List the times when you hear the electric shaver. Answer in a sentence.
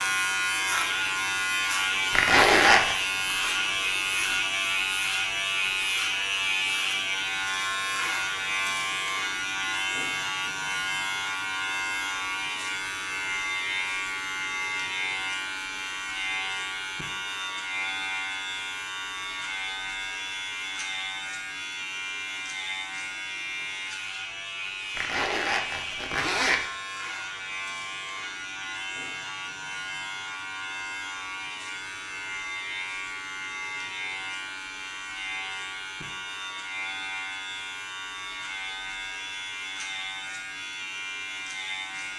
The electric shaver can be heard from 0.0 to 42.1 s.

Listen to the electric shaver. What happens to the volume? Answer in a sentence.
The volume of the electric shaver goes down.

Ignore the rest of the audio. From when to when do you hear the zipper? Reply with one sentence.
The zipper can be heard from 2.1 to 3.0 s and from 24.9 to 26.6 s.